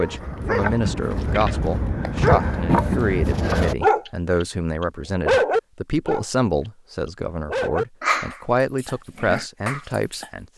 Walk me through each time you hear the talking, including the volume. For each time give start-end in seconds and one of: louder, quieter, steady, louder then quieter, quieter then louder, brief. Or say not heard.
0.0-10.4 steady.